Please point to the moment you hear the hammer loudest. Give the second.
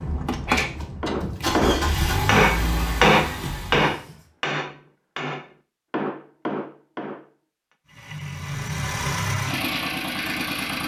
3 s.